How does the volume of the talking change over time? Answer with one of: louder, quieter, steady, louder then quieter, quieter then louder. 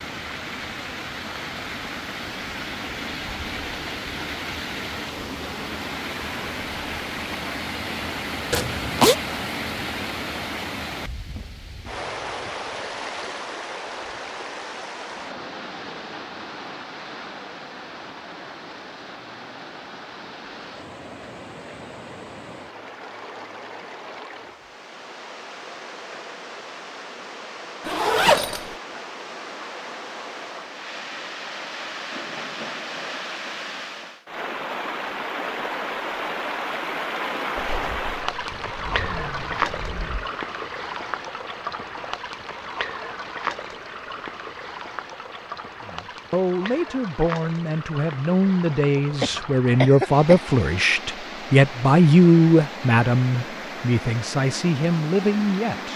louder then quieter.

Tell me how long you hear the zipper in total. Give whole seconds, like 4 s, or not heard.
4 s.